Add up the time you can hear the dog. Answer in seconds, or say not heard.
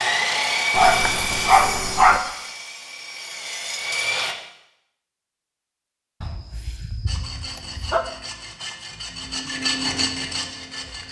3 s.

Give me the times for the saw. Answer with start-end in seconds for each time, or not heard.
0.0-4.3, 7.0-11.0.